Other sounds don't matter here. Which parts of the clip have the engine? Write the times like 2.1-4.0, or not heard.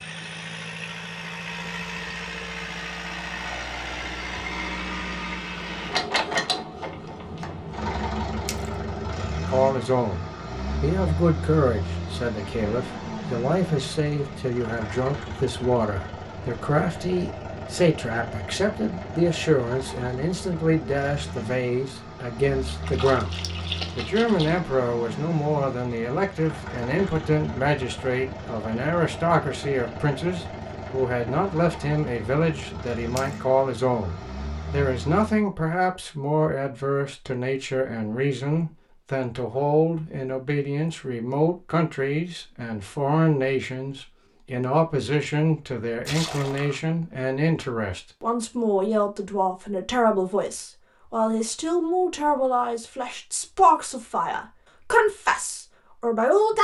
0.0-35.5.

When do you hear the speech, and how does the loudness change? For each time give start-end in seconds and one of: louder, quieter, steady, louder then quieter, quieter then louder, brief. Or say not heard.
9.3-56.5 steady.